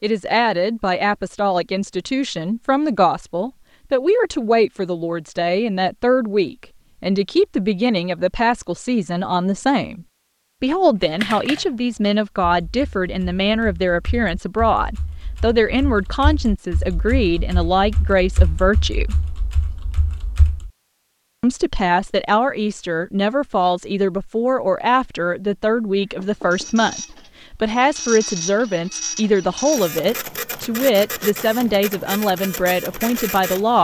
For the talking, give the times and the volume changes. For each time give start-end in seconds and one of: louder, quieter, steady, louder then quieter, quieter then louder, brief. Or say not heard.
0.0-19.1 steady
21.4-33.7 steady.